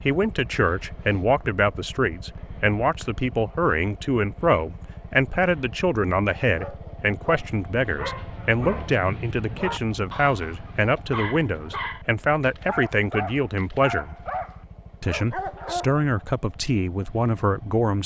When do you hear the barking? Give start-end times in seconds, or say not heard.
6.5-16.1.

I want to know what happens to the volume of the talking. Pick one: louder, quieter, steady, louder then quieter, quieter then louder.
steady.